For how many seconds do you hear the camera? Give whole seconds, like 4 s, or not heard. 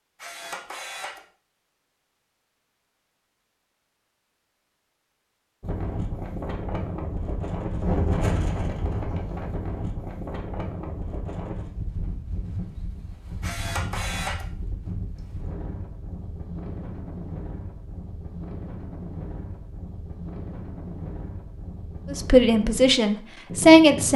2 s.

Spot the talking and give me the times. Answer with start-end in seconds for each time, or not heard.
22.1-24.1.